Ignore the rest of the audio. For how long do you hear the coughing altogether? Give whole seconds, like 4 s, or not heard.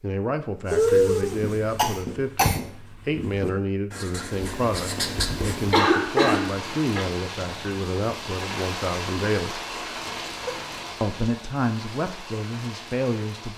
4 s.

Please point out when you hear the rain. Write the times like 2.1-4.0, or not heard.
4.3-13.5.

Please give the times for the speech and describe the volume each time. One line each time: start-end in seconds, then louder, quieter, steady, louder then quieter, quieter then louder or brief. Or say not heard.
0.0-9.6 steady
11.0-13.5 brief.